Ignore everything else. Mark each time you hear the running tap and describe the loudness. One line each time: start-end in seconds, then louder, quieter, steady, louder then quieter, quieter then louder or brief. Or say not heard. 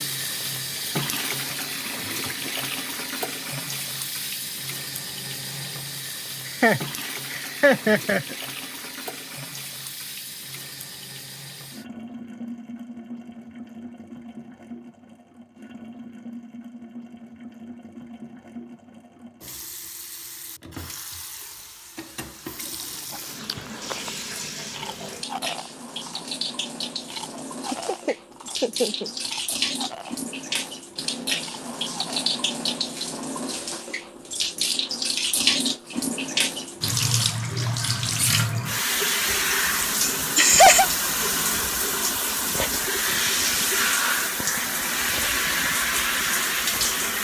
0.0-47.1 quieter then louder.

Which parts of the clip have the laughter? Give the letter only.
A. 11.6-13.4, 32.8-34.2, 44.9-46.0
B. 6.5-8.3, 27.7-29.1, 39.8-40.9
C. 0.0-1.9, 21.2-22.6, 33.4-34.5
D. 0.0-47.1
B.